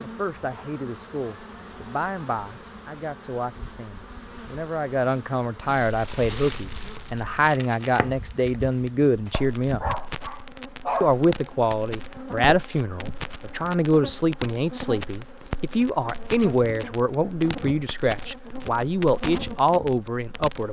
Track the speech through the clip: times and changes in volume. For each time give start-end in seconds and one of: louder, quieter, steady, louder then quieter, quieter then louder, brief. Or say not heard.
0.0-9.8 louder
11.0-20.6 steady.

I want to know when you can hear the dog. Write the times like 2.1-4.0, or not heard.
9.3-11.2.